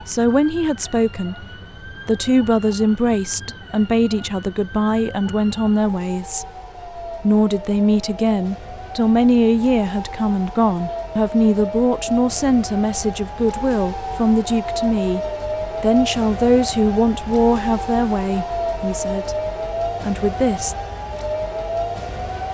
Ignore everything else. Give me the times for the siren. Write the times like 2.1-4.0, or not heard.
0.0-22.5.